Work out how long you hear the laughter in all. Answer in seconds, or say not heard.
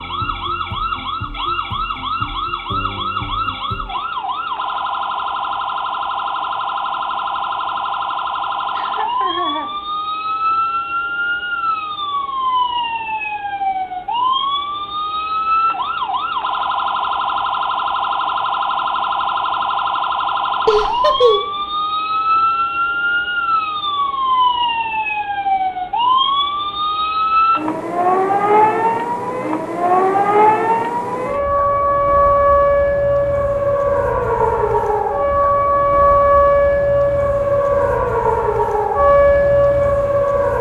2 s.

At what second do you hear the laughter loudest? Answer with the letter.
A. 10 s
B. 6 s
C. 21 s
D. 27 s
C.